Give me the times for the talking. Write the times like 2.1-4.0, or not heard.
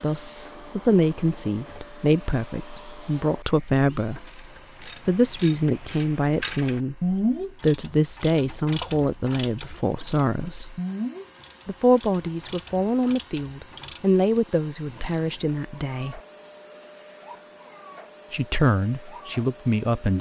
0.0-4.3, 5.0-10.8, 11.7-16.2, 18.3-20.1.